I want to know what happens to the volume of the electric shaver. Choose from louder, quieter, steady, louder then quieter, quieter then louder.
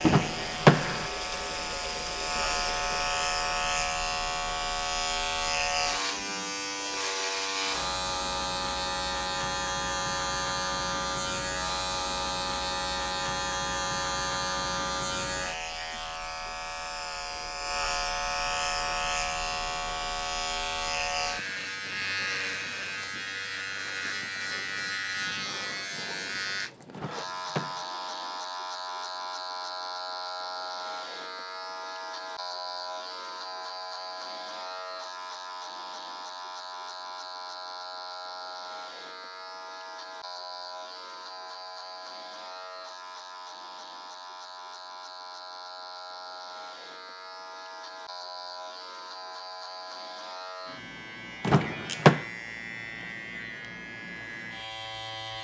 quieter.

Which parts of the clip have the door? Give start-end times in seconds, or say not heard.
0.1-1.1, 26.9-27.8, 51.4-52.2.